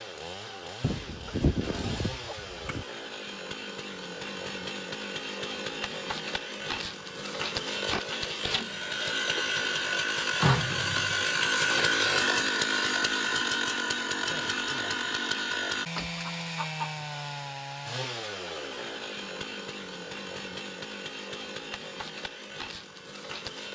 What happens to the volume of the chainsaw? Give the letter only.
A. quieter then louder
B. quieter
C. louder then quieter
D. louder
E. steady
C.